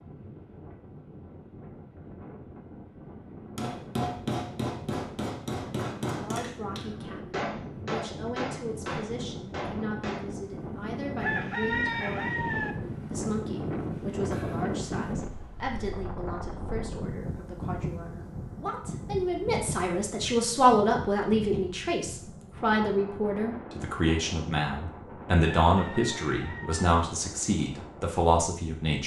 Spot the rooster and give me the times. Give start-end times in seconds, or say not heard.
11.2-12.8, 25.6-26.9.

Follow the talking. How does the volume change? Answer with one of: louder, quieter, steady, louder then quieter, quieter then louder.
louder.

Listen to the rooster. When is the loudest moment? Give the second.
12 s.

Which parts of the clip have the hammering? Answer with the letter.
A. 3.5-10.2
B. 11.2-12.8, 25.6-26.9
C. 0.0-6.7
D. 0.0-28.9
A.